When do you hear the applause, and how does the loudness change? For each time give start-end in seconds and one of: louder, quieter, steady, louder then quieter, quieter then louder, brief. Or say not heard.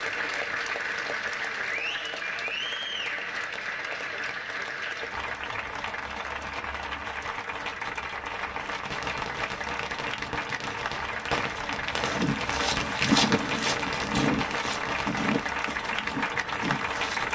0.0-17.2 steady.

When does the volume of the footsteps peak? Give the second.
13 s.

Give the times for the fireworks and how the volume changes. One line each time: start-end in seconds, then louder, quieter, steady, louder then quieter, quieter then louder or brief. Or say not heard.
8.7-15.6 steady.